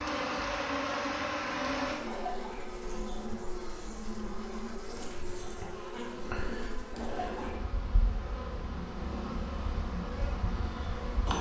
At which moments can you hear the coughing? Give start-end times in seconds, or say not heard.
2.0-2.8, 7.0-7.7.